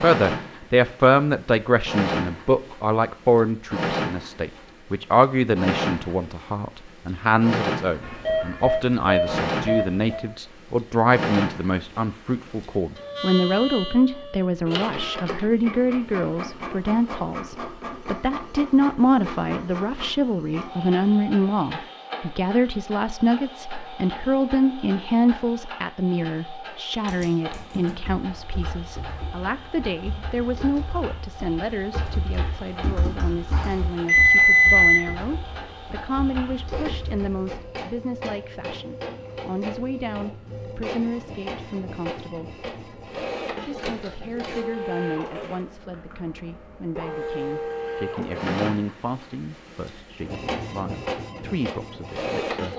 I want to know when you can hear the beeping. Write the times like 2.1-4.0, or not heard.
8.0-10.2, 33.5-35.0.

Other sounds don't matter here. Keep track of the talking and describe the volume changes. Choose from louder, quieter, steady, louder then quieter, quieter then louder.
quieter.